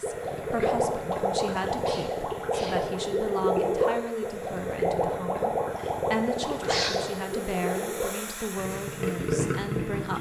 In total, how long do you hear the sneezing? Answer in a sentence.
You can hear the sneezing for 2 seconds altogether.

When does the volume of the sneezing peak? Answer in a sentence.
The loudest moment of the sneezing is at 7 seconds.